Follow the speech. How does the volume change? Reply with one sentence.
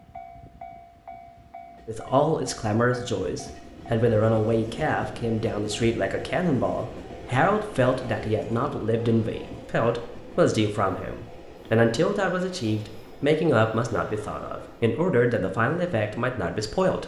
The volume of the speech stays about the same.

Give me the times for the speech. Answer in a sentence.
You can hear the speech from 1.9 to 17.0 s.